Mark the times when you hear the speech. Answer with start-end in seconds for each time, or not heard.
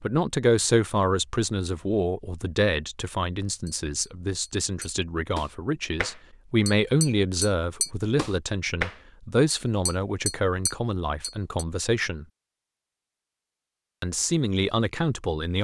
0.0-12.2, 14.0-15.5.